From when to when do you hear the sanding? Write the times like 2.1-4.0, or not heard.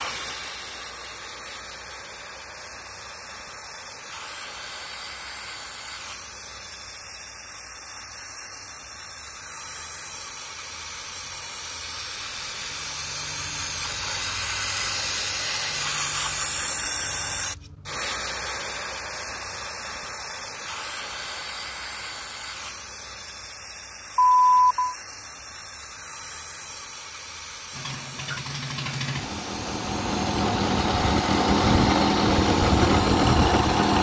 not heard.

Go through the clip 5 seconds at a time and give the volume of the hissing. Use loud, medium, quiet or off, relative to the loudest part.
medium, medium, loud, loud, medium, medium, medium.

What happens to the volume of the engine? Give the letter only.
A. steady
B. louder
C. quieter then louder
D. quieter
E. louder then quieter
B.